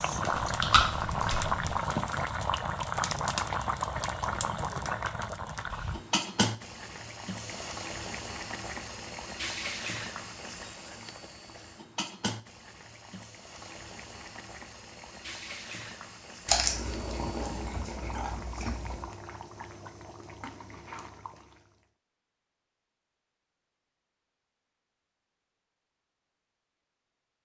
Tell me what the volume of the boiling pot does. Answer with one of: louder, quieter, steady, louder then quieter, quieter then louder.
quieter.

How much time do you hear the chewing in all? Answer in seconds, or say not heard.
4 s.